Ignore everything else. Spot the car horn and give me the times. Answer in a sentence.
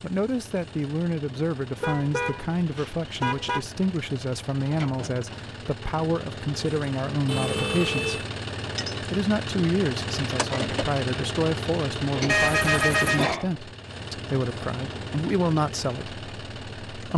You can hear the car horn from 1.8 to 3.6 s, from 7.2 to 8.2 s and from 12.2 to 13.3 s.